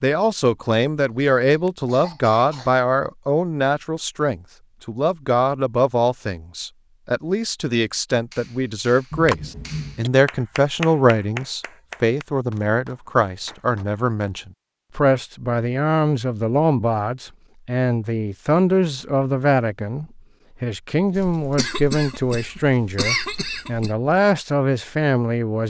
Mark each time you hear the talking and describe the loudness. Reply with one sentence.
You can hear the talking from 0.0 to 25.6 s, at a steady volume.